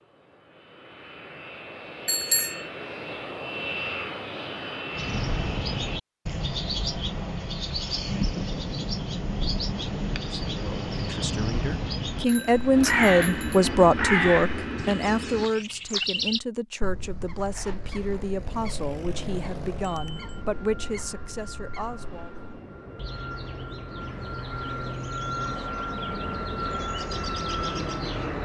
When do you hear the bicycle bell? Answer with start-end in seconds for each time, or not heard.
2.0-2.6, 12.2-13.6, 19.8-20.4.